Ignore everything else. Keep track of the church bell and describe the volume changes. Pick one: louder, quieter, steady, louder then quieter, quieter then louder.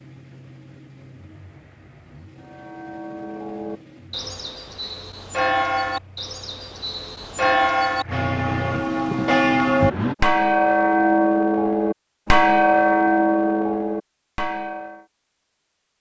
louder.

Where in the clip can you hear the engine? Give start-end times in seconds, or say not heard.
0.0-10.2.